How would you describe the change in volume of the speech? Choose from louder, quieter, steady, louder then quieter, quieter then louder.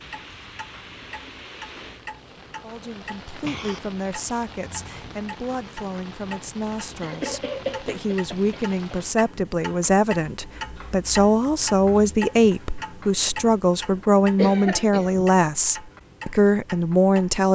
louder.